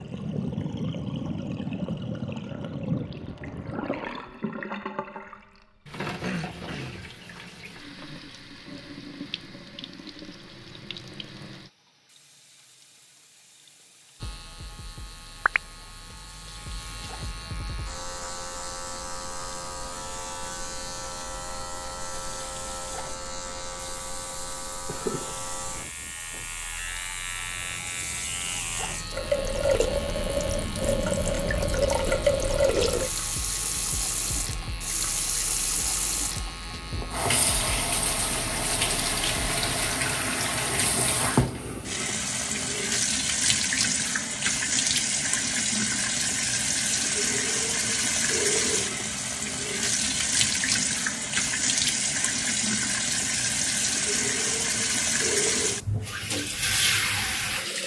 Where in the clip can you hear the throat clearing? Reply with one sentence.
The throat clearing can be heard from 6.2 to 7.1 s.